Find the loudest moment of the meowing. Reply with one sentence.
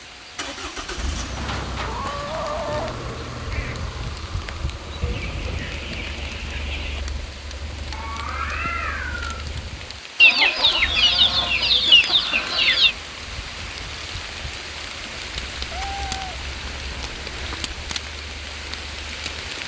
The loudest moment of the meowing is at 9 seconds.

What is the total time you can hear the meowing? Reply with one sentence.
You can hear the meowing for 5 seconds altogether.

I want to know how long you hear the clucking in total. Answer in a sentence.
The clucking can be heard for 9 seconds in total.